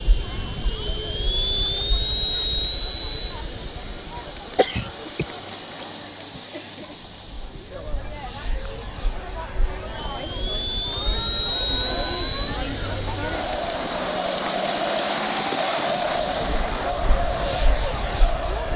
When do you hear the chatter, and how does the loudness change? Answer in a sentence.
You can hear the chatter from 0.1 to 18.7 s, getting louder.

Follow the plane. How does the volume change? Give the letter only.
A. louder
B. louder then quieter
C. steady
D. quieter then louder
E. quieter
D.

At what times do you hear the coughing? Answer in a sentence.
The coughing can be heard from 4.5 to 5.2 s.